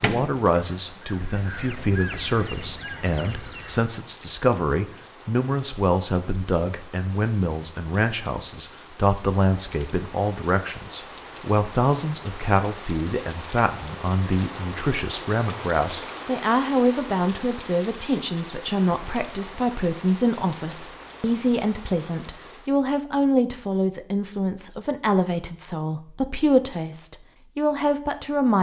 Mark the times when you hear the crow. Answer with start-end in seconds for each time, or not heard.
0.0-3.9.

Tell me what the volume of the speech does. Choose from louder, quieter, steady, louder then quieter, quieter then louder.
steady.